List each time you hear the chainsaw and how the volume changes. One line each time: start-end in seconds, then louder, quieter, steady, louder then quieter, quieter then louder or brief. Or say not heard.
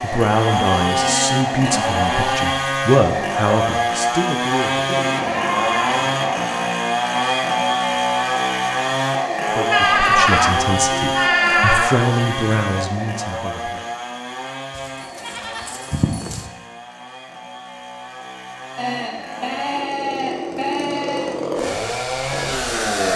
0.0-23.1 quieter then louder.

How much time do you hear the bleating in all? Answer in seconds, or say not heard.
10 s.